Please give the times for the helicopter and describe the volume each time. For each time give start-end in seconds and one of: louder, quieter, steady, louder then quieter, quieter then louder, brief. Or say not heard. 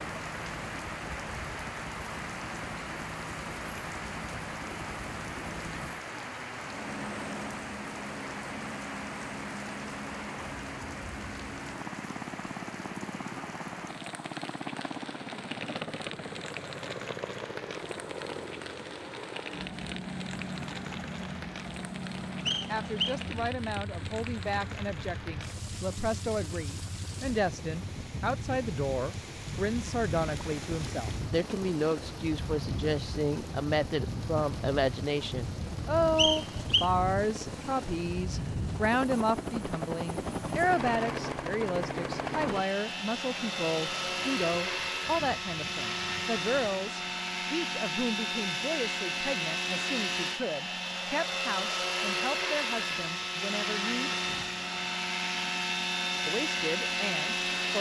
0.0-57.7 louder.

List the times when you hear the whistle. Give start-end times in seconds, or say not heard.
22.4-23.1, 36.1-36.9.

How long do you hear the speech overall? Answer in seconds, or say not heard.
33 s.